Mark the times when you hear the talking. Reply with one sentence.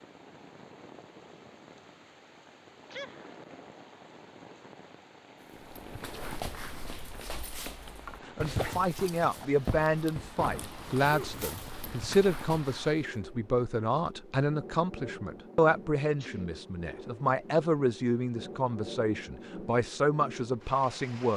You can hear the talking from 8.2 to 21.3 s.